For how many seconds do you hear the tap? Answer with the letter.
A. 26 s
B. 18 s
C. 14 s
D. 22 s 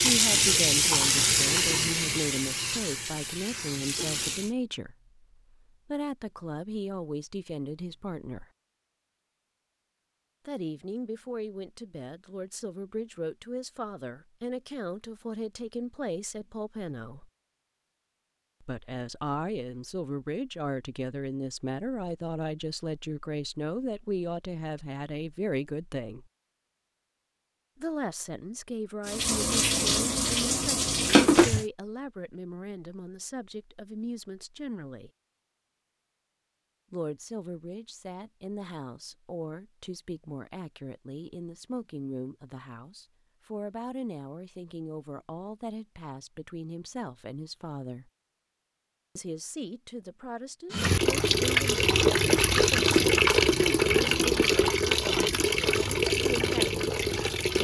C.